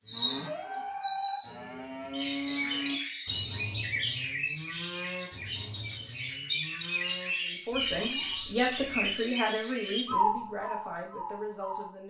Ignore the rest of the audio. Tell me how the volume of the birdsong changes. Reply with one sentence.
The loudness of the birdsong stays about the same.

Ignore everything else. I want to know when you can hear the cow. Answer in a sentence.
The cow can be heard from 0.1 to 9.2 s.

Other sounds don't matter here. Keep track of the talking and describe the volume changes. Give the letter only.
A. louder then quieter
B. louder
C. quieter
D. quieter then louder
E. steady
C.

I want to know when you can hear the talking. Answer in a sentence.
The talking can be heard from 7.5 to 12.0 s.